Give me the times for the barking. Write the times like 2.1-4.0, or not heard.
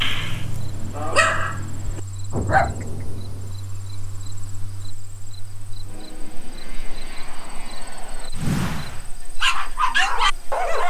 0.0-2.9, 8.3-10.8.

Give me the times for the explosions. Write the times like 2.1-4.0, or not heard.
2.3-3.5.